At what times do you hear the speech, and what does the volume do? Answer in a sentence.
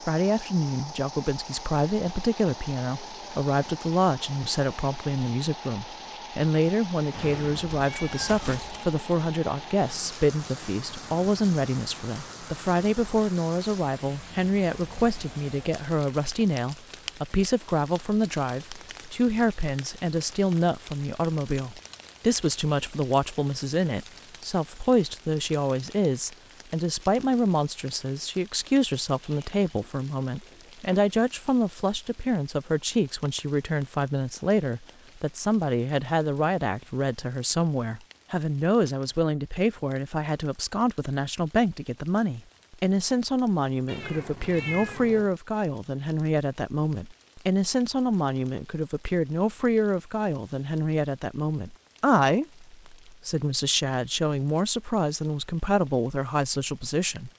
You can hear the speech from 0.1 to 57.3 s, at a steady volume.